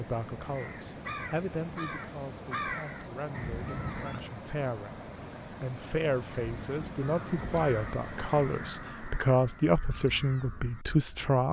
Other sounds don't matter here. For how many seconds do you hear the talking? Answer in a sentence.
You can hear the talking for 11 seconds altogether.